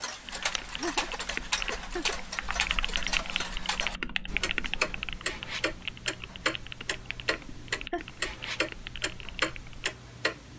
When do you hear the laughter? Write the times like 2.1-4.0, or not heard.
0.7-2.1, 7.5-8.1.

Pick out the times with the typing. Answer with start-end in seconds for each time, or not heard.
0.2-9.9.